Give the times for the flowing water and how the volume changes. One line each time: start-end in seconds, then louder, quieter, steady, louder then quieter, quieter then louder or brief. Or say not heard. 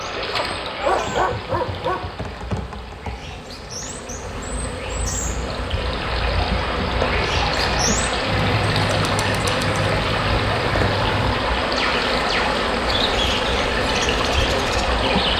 0.0-15.3 louder.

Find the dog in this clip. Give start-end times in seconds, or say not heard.
0.6-2.1.